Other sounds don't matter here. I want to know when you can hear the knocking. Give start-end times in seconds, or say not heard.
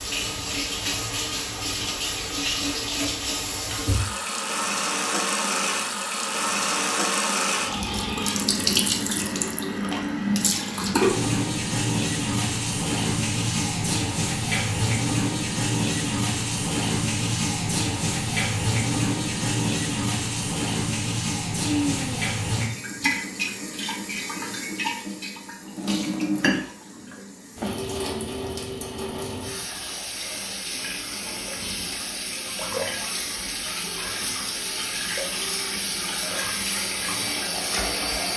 not heard.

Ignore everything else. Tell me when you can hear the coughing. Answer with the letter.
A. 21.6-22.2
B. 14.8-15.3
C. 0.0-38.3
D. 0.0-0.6
A.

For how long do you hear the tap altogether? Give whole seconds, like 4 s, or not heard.
38 s.